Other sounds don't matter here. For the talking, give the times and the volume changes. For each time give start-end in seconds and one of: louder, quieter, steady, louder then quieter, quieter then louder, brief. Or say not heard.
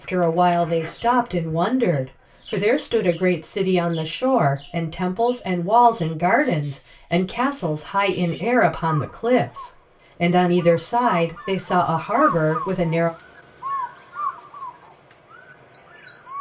0.0-13.1 steady.